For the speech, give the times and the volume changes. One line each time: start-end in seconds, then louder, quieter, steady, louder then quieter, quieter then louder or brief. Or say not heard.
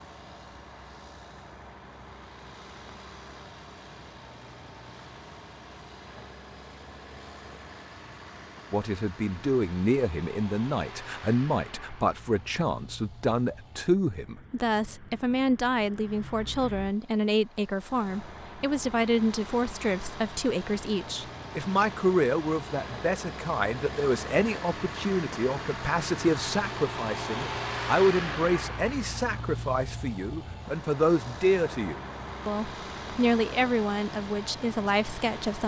8.7-35.6 steady.